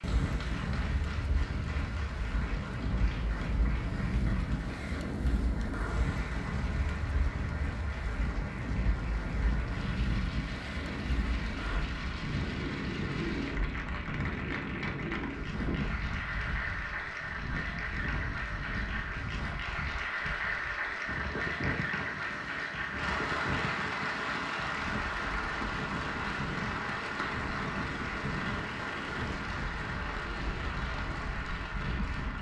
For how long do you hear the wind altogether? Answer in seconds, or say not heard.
32 s.